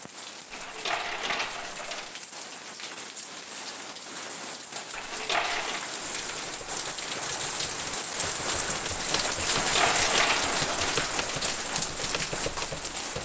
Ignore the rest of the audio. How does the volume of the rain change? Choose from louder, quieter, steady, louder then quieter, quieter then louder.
louder.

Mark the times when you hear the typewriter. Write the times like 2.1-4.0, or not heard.
6.2-13.2.